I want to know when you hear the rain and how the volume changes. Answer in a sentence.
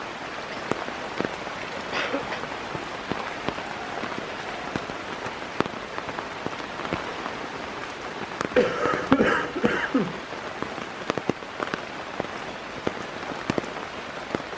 The rain can be heard from 0.0 to 14.5 s, at a steady volume.